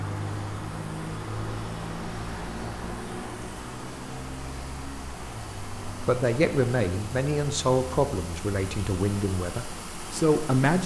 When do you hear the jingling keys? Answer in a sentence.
The jingling keys can't be heard in this clip.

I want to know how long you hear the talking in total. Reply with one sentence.
The talking can be heard for 5 seconds in total.